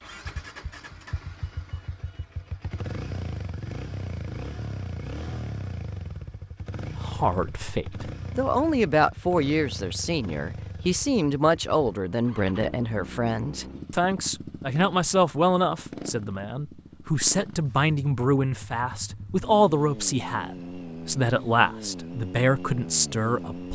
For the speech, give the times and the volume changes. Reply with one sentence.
The speech can be heard from 7.0 to 23.6 s, at a steady volume.